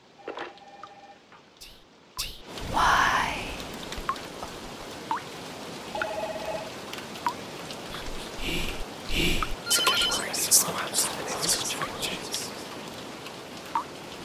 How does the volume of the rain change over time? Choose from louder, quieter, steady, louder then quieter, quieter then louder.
louder.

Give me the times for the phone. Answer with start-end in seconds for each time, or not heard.
0.1-1.4, 5.9-6.7, 9.7-10.2.